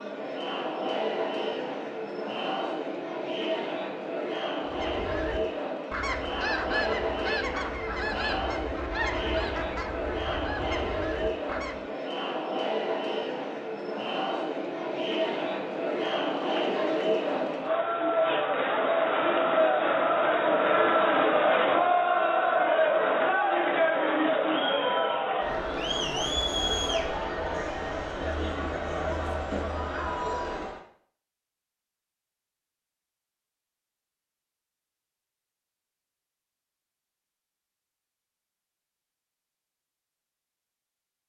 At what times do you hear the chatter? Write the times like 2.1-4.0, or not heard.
0.0-30.9.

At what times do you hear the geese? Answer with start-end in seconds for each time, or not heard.
4.7-11.8.